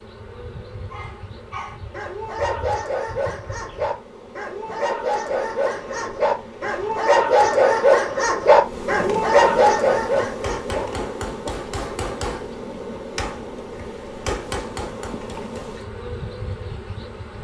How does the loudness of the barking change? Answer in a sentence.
The loudness of the barking goes up.